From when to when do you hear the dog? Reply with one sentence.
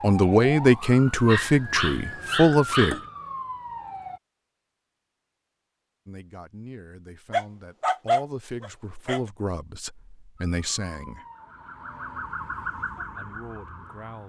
The dog can be heard from 1.2 to 3.0 s and from 7.3 to 9.2 s.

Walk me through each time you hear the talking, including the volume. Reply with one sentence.
The talking can be heard briefly from 0.0 to 3.0 s; from 6.0 to 11.2 s, getting louder; and briefly from 13.2 to 14.2 s.